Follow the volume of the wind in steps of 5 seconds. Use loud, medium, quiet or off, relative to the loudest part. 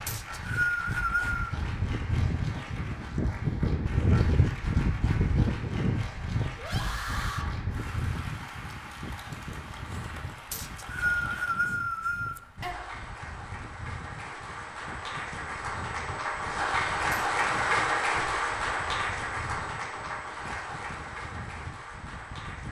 loud, loud, quiet, quiet, quiet.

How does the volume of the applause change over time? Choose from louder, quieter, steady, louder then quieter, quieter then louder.
louder.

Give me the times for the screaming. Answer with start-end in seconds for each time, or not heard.
6.5-7.5.